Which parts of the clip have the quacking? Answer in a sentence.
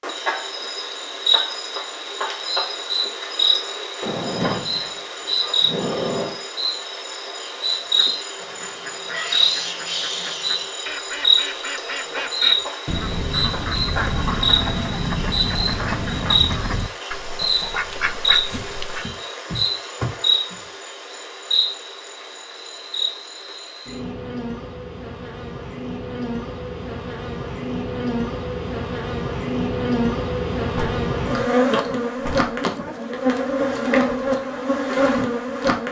The quacking can be heard from 7.8 to 19.1 s.